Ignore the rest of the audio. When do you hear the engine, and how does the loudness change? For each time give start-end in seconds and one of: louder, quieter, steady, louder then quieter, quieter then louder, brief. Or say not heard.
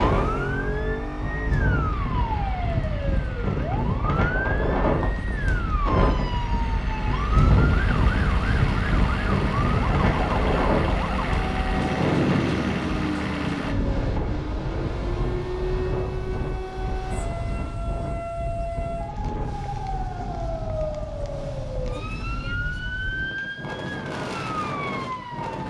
0.0-13.8 quieter then louder.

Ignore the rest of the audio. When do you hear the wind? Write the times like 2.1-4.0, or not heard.
0.0-25.6.